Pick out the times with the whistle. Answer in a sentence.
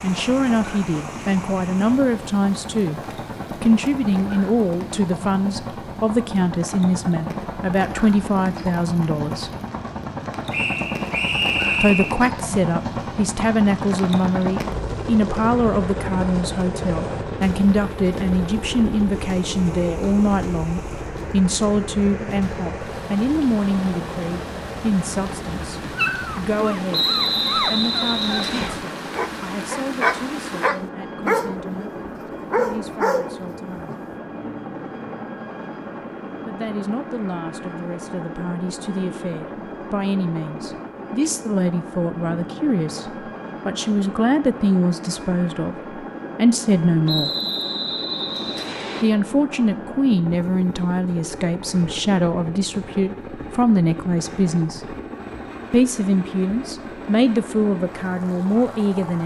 You can hear the whistle from 10.5 to 12.2 s, from 26.9 to 28.7 s and from 47.0 to 49.0 s.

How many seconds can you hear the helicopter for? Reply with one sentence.
You can hear the helicopter for 59 seconds altogether.